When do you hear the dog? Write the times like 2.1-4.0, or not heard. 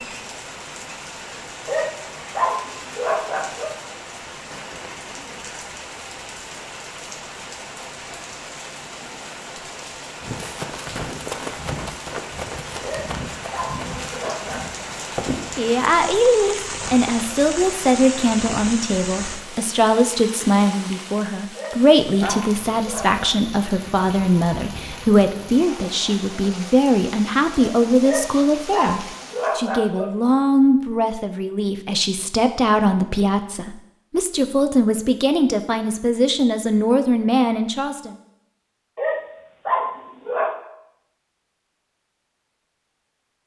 1.6-3.8, 12.8-14.8, 21.6-23.2, 28.0-30.1, 39.0-40.6.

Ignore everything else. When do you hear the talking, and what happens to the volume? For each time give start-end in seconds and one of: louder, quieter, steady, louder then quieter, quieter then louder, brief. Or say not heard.
15.6-38.1 steady.